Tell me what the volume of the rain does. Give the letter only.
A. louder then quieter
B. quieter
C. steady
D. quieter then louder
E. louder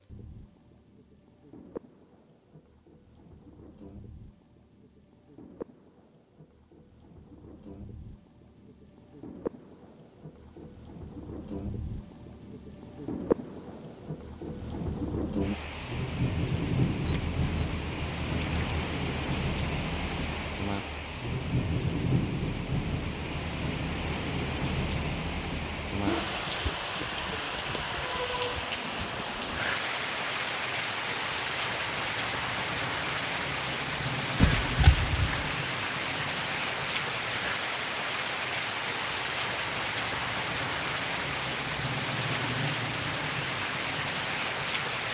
E.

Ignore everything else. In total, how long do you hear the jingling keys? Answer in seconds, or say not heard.
3 s.